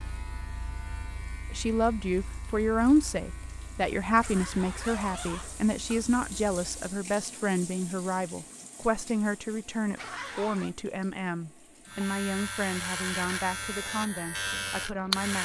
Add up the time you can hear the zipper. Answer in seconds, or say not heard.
2 s.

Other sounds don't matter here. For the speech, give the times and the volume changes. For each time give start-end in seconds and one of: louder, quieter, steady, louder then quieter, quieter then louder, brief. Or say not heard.
1.5-15.4 quieter.